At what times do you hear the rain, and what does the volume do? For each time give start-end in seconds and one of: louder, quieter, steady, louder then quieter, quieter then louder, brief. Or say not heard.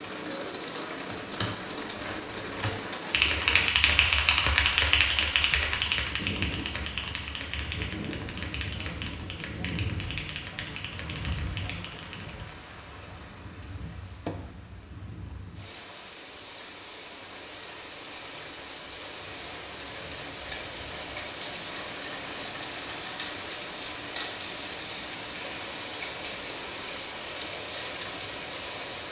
0.0-29.0 quieter then louder.